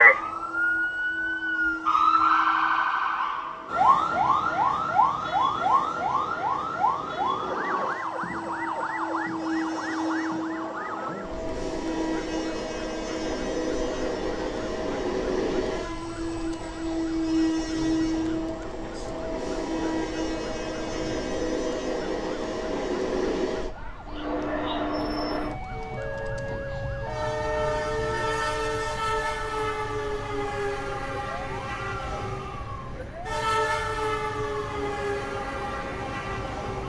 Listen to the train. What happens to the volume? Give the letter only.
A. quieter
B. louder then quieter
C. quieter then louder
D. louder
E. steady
D.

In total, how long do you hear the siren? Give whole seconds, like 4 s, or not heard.
37 s.